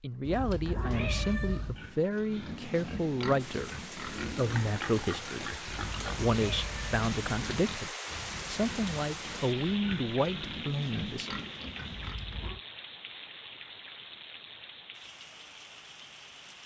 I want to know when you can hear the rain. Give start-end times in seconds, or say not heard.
3.4-16.6.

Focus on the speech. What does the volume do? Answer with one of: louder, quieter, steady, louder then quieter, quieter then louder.
steady.